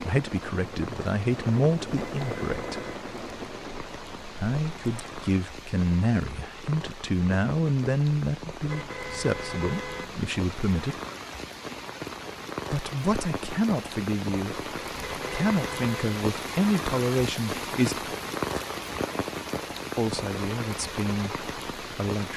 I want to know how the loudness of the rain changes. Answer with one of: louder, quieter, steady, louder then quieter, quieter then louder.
louder.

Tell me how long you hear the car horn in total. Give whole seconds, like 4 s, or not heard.
4 s.